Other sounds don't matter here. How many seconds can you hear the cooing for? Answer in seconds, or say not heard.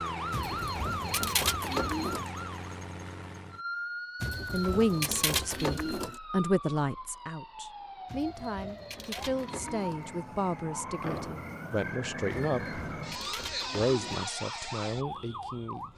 8 s.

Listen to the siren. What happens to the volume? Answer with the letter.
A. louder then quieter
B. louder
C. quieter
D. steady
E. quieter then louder
E.